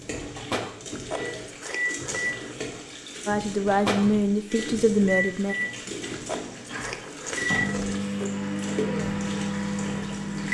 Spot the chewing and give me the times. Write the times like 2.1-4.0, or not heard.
0.9-2.6, 6.1-8.3.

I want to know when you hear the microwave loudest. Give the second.
8 s.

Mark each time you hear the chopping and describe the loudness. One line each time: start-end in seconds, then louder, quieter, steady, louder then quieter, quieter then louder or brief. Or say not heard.
not heard.